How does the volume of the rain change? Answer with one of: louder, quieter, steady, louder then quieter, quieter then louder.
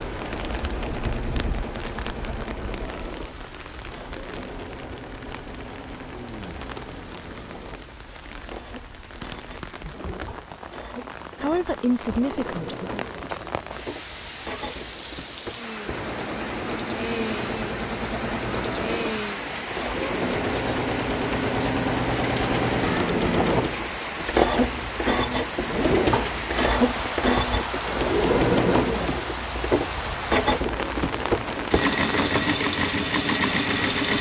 louder.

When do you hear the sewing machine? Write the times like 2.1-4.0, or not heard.
0.0-34.1.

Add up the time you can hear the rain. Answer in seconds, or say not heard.
34 s.